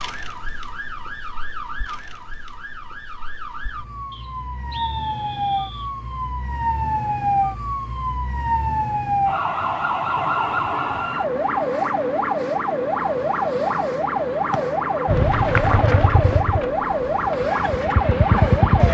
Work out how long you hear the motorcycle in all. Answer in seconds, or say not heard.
4 s.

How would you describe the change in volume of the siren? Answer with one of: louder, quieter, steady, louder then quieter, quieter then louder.
louder.